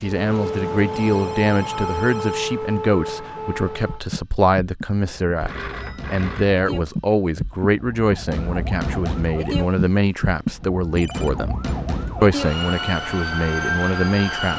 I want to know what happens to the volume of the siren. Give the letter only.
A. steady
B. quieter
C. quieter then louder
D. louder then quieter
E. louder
C.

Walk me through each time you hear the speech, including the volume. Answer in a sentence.
The speech can be heard from 0.0 to 11.6 s, at a steady volume; and briefly from 12.2 to 14.5 s.